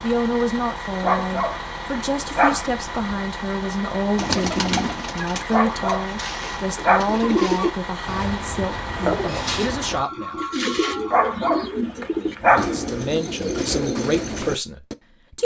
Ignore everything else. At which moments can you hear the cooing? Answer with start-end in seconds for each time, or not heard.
4.2-14.9.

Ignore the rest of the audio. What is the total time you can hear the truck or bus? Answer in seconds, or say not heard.
11 s.